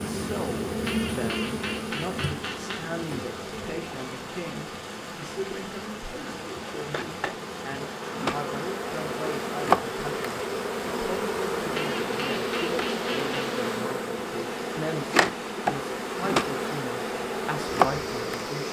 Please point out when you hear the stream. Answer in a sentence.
You can hear the stream from 0.0 to 18.6 s.